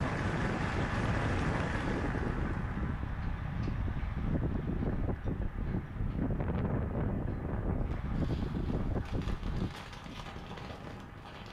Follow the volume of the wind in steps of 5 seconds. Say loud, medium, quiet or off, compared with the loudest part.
loud, loud, quiet.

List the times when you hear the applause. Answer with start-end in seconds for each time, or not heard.
0.0-11.4.